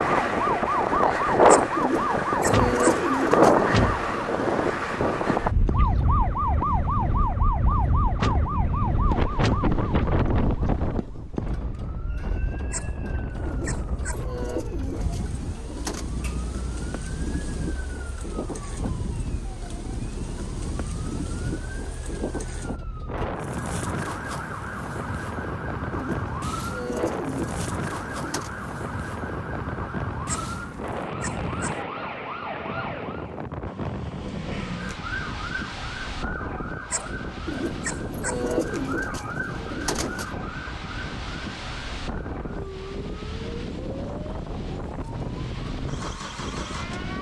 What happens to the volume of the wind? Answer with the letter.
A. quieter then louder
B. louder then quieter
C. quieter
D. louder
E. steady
C.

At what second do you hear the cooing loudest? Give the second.
3 s.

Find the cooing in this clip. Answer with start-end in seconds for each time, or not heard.
1.8-3.6, 13.4-16.1, 25.9-28.5, 37.5-40.3.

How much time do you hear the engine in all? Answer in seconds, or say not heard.
2 s.